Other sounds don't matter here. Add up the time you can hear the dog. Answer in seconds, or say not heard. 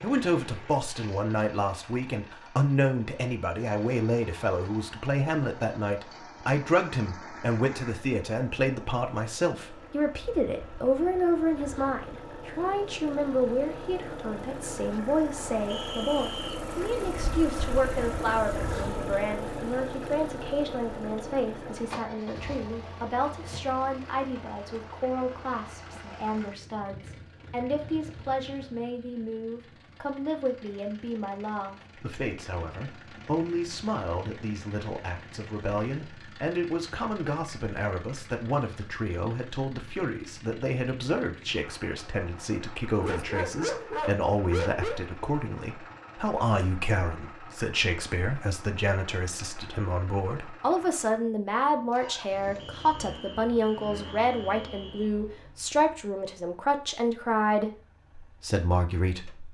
2 s.